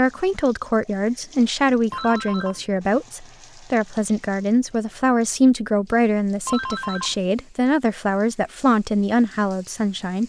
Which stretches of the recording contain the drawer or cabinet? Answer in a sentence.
You can't hear the drawer or cabinet here.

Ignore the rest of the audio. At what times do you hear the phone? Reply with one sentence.
You can hear the phone from 1.9 to 2.6 s and from 6.5 to 7.2 s.